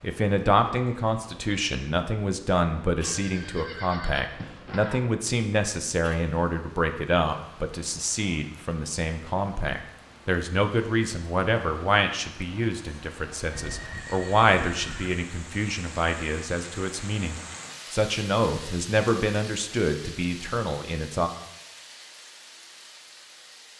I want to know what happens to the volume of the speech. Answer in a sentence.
The volume of the speech stays about the same.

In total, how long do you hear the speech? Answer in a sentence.
You can hear the speech for 21 seconds altogether.